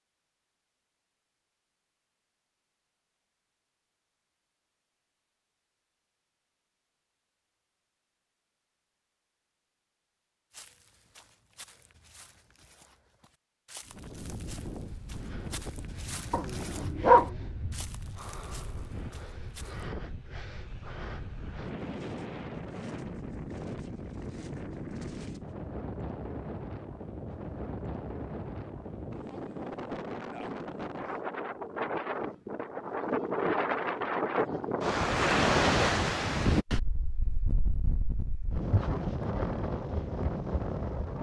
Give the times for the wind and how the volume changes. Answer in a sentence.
The wind can be heard from 13.8 to 41.1 s, getting louder.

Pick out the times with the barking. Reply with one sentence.
You can hear the barking from 16.3 to 17.8 s.